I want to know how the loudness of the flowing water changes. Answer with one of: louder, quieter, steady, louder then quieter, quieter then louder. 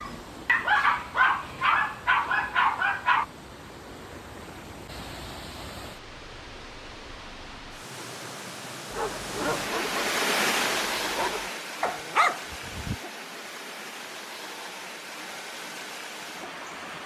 louder then quieter.